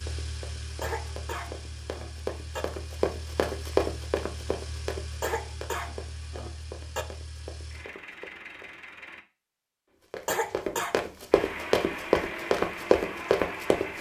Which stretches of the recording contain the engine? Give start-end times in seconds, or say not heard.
0.0-9.2, 11.3-13.9.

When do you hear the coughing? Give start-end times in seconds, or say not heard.
0.8-2.6, 5.2-7.0, 10.2-11.0.